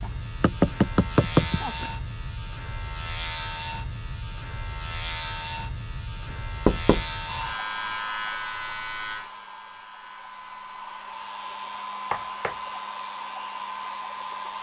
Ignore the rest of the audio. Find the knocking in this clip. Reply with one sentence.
The knocking can be heard from 0.4 to 1.9 s, from 6.3 to 7.0 s and from 12.1 to 13.0 s.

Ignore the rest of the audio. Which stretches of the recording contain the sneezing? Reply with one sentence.
The sneezing can't be heard in this clip.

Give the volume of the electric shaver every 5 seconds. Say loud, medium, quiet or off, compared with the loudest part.
loud, loud, quiet.